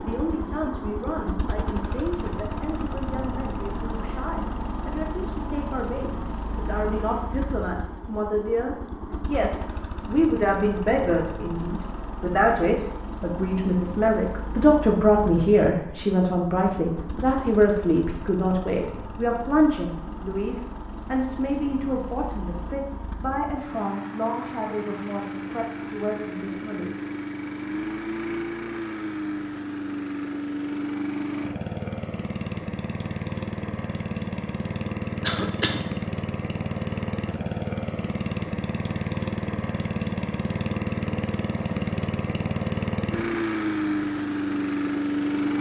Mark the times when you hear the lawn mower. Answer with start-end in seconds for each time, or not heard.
0.0-45.5.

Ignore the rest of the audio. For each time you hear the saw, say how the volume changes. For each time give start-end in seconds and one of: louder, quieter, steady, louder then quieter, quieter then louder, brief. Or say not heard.
not heard.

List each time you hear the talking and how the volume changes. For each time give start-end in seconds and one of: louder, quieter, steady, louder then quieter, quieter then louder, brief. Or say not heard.
0.0-26.9 louder then quieter.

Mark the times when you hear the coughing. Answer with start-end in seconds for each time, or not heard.
35.2-35.9.